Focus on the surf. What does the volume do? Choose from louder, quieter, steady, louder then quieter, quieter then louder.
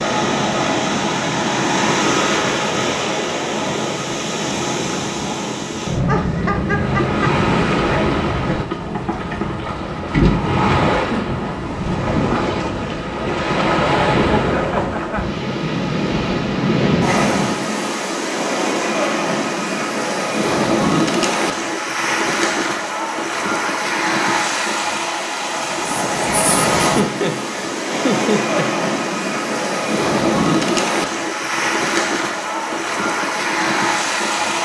steady.